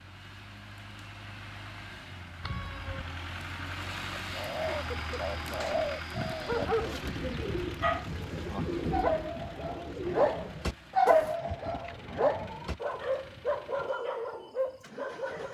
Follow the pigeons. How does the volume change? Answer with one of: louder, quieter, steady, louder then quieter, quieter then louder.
steady.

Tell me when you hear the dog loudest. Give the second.
11 s.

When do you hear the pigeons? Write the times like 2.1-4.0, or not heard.
4.1-11.4.